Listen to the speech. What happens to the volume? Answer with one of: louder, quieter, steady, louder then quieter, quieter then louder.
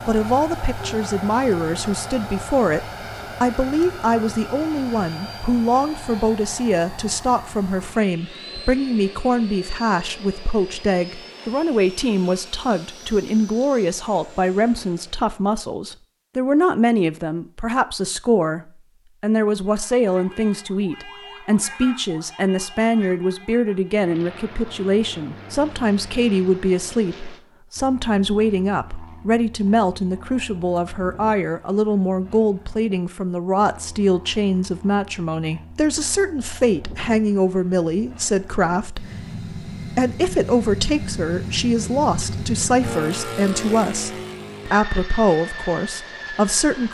steady.